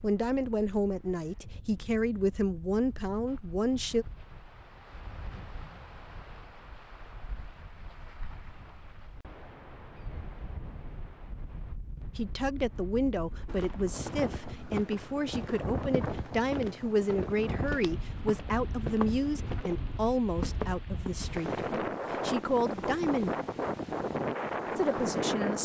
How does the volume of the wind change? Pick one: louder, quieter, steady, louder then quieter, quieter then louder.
louder.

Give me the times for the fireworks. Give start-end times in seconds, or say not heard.
not heard.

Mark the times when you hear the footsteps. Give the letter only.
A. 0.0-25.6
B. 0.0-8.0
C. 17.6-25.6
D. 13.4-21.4
D.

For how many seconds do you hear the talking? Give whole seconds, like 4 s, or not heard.
16 s.